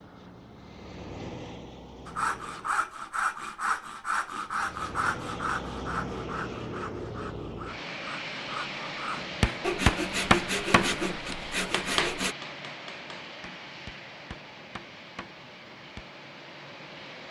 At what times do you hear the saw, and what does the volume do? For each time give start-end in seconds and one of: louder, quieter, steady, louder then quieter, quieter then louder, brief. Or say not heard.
2.0-12.3 quieter then louder.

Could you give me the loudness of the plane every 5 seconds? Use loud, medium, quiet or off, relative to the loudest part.
medium, loud, loud, medium.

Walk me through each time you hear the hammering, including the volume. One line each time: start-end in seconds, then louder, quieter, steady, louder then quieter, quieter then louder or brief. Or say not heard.
9.1-16.1 quieter.